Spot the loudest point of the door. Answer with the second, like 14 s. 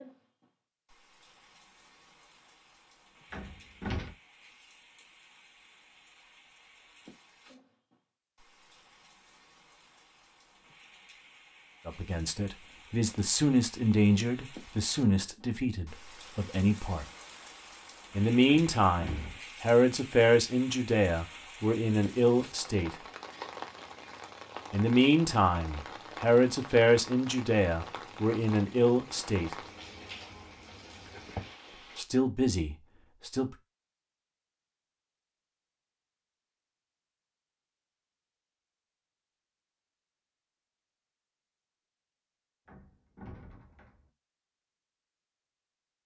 4 s.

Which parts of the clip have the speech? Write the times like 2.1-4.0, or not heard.
11.8-17.1, 18.1-23.0, 24.7-29.6, 31.9-33.5.